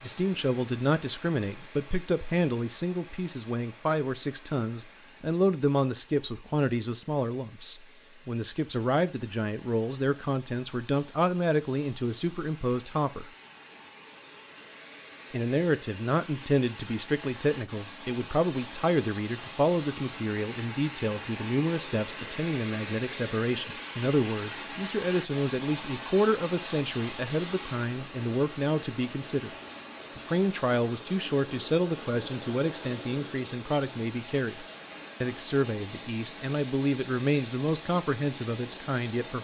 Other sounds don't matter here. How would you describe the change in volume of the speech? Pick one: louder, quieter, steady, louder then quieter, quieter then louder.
steady.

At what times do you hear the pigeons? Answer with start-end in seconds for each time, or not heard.
not heard.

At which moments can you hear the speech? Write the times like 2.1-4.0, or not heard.
0.0-13.3, 15.3-29.5, 30.1-39.3.